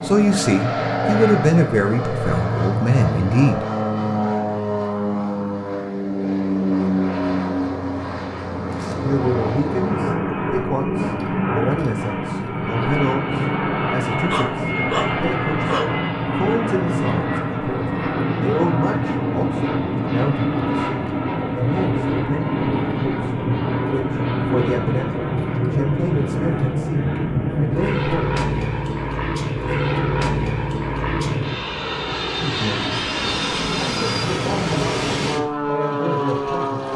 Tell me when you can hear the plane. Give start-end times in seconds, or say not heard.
0.0-36.9.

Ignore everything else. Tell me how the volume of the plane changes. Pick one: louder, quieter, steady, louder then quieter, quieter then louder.
steady.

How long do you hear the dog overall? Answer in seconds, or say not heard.
2 s.